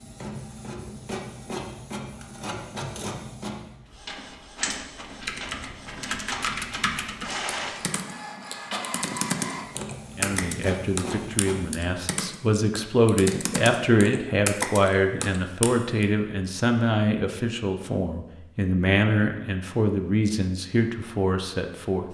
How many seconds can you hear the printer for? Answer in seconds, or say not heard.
12 s.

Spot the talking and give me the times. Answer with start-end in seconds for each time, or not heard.
10.2-22.0.